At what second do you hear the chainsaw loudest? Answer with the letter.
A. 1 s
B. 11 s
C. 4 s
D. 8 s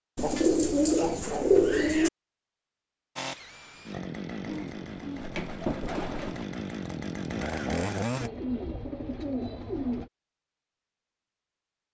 D.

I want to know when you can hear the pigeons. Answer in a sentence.
The pigeons can be heard from 0.1 to 2.1 s, from 4.5 to 6.5 s and from 8.2 to 10.1 s.